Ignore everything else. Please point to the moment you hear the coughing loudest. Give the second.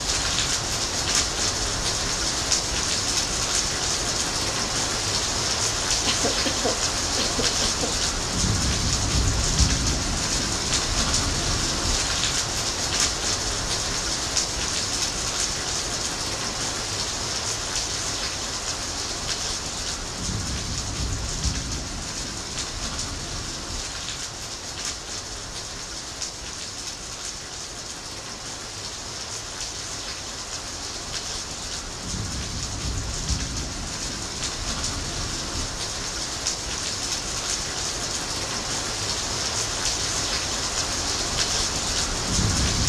7 s.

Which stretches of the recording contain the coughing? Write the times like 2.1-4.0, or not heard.
6.0-7.9.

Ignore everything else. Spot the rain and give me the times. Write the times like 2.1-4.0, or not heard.
0.0-42.8.